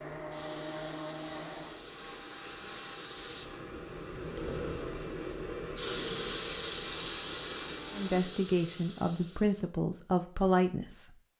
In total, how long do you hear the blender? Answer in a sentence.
You can hear the blender for 8 seconds altogether.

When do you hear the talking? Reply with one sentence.
The talking can be heard from 7.9 to 11.1 s.